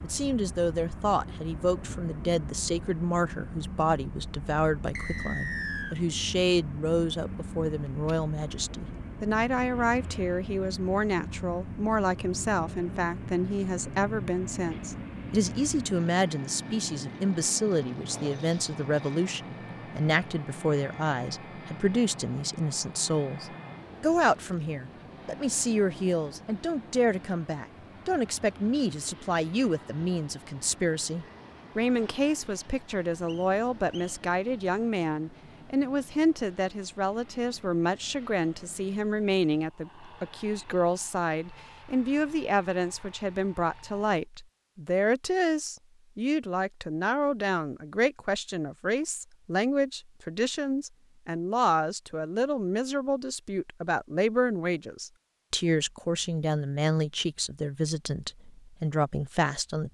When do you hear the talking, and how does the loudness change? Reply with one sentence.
You can hear the talking from 0.0 to 59.8 s, at a steady volume.